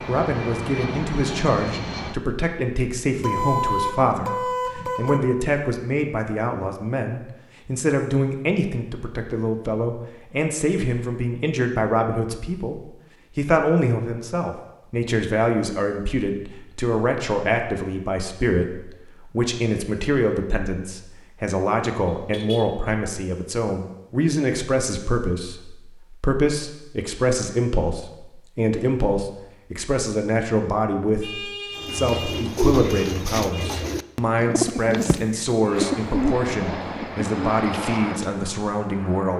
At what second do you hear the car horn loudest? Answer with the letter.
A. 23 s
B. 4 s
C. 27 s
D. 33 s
B.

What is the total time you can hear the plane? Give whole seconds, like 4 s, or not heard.
6 s.